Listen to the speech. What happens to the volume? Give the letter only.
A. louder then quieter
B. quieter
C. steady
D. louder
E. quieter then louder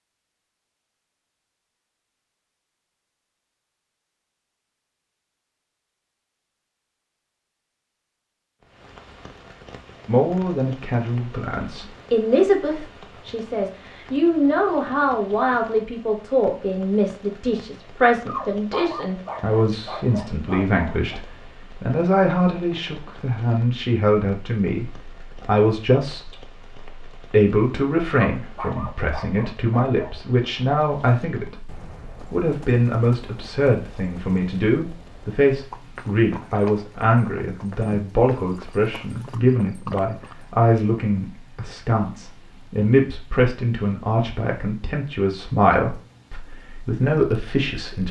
C.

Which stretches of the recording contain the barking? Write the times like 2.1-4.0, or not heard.
18.2-21.2, 28.4-30.1.